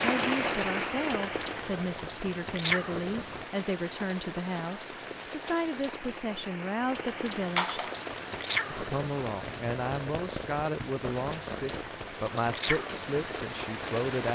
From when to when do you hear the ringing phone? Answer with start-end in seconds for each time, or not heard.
7.5-8.0.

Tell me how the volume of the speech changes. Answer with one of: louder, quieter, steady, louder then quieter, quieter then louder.
steady.